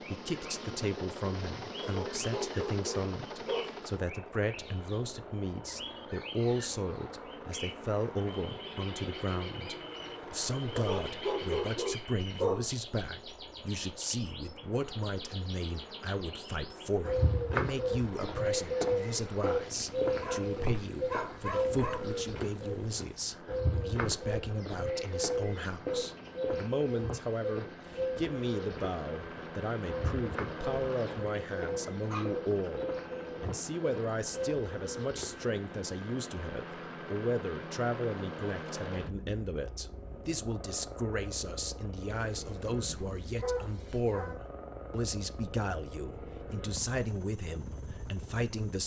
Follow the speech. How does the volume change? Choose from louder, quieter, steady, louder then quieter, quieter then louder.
steady.